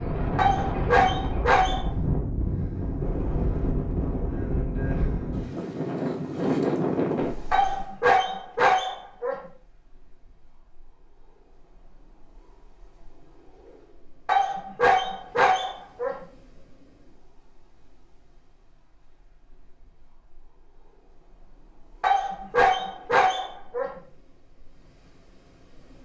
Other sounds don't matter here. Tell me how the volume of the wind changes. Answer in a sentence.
The loudness of the wind goes down.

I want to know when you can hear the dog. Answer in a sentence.
You can hear the dog from 0.3 to 1.9 s, from 7.5 to 9.4 s, from 14.2 to 16.2 s and from 22.0 to 23.9 s.